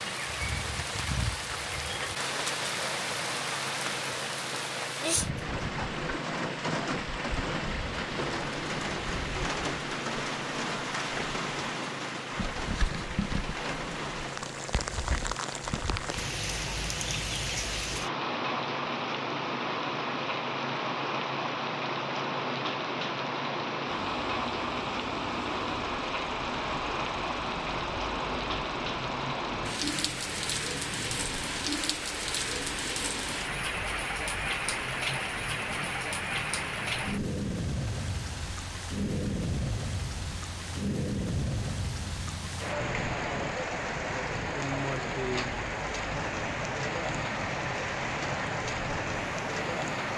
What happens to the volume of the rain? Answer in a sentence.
The volume of the rain stays about the same.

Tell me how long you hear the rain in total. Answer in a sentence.
The rain can be heard for 50 seconds in total.